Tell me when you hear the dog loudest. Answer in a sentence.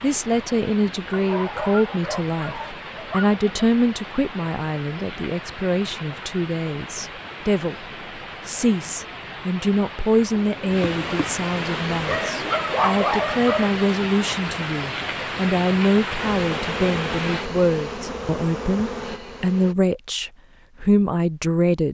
The volume of the dog peaks at 13 seconds.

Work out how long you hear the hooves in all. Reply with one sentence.
You can't hear the hooves here.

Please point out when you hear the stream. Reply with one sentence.
You can hear the stream from 0.0 to 17.5 s.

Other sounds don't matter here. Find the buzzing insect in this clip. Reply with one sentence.
The buzzing insect can be heard from 10.3 to 12.3 s and from 16.1 to 19.8 s.